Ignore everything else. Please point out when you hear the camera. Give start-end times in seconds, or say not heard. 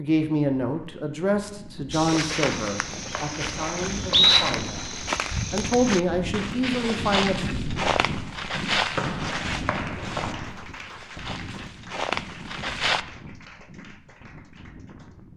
not heard.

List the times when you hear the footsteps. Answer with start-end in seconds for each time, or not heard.
1.9-13.1.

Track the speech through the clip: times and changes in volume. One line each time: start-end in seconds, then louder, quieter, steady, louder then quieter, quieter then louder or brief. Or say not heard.
0.0-7.3 quieter then louder.